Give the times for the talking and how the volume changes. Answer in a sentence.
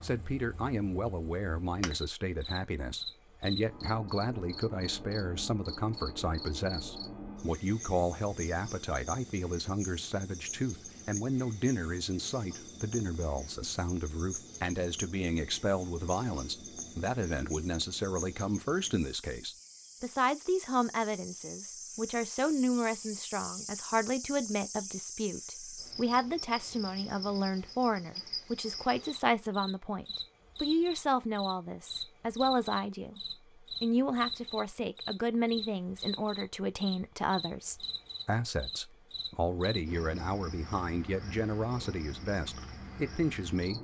The talking can be heard from 0.0 to 43.7 s, at a steady volume.